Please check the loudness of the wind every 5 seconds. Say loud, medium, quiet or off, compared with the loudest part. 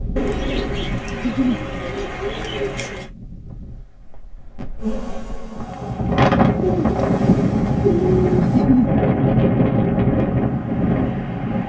quiet, loud, loud.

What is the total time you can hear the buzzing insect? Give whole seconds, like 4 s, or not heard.
4 s.